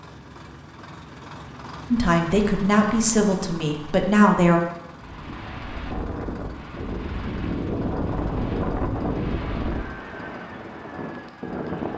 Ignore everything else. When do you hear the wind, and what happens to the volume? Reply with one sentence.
The wind can be heard from 4.9 to 11.9 s, getting louder then quieter.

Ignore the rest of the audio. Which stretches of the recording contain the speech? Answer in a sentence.
The speech can be heard from 1.9 to 4.6 s.